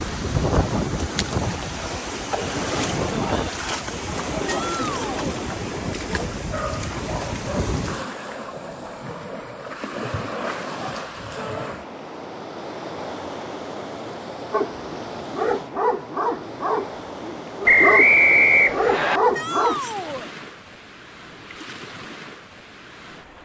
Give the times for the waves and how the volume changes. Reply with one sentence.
The waves can be heard from 0.0 to 23.4 s, getting quieter.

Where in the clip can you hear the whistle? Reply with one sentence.
The whistle can be heard from 17.6 to 19.2 s.